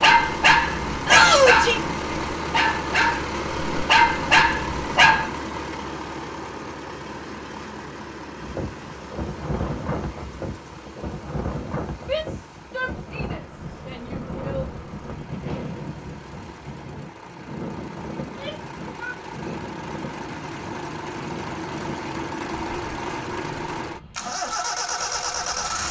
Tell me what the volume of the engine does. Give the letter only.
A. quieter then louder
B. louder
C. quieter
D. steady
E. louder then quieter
A.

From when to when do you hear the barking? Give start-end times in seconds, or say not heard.
0.0-5.3.